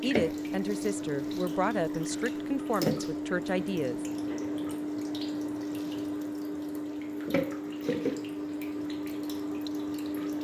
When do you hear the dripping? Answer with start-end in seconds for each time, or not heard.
0.0-10.4.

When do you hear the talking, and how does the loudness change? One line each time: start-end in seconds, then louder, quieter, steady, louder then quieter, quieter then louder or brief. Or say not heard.
0.0-4.0 steady.